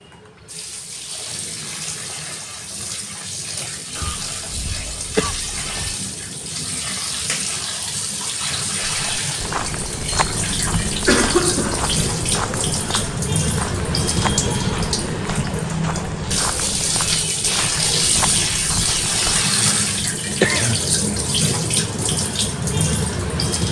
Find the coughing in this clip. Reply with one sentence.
The coughing can be heard from 4.0 to 6.0 s, from 11.0 to 11.9 s and from 19.9 to 21.1 s.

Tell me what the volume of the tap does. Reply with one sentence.
The loudness of the tap goes up.